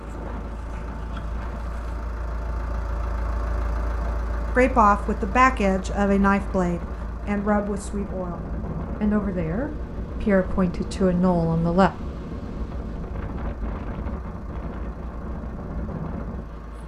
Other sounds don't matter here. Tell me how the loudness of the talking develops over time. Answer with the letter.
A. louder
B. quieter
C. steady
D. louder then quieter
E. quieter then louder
E.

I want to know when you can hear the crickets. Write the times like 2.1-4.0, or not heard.
not heard.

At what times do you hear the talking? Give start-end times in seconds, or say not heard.
4.5-11.9.